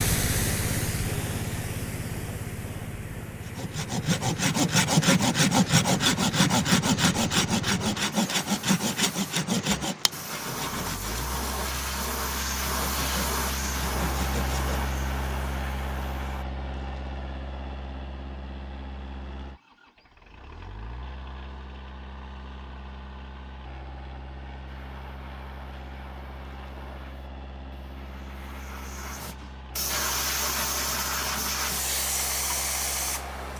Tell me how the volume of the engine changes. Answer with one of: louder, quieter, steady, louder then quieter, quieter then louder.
quieter.